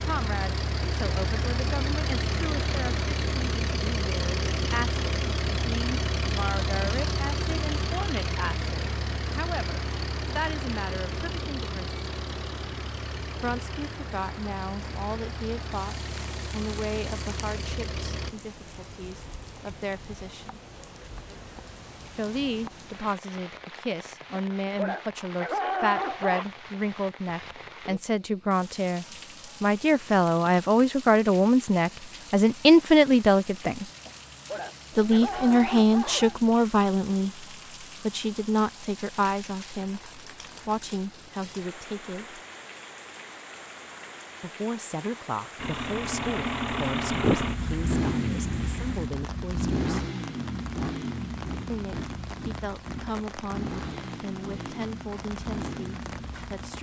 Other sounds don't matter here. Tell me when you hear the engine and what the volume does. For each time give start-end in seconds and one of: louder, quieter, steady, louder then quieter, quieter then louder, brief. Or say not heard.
0.0-18.4 quieter
45.5-56.7 quieter.